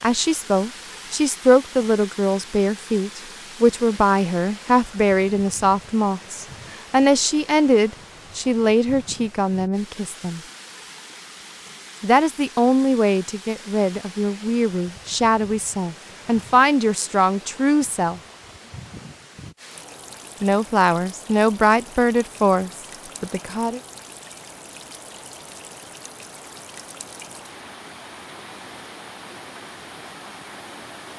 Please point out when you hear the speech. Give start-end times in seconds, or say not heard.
0.0-10.4, 12.0-18.2, 20.4-23.8.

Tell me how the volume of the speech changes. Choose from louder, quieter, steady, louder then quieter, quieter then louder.
steady.